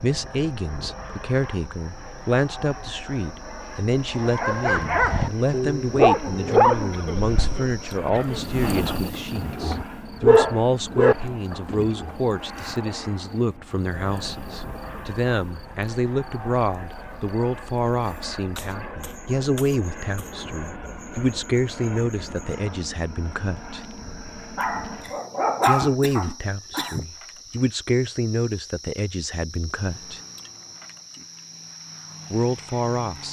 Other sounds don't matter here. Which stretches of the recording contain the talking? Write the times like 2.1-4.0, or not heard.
0.0-23.8, 25.6-30.2, 32.3-33.2.